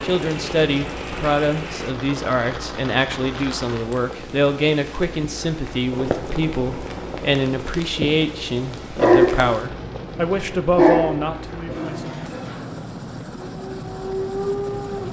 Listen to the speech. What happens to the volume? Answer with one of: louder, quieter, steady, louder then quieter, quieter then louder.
steady.